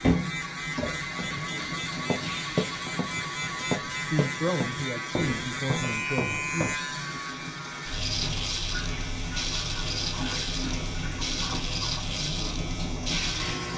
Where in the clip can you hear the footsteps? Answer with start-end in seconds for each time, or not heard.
1.1-6.8.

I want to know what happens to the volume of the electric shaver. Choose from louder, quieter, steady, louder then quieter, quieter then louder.
steady.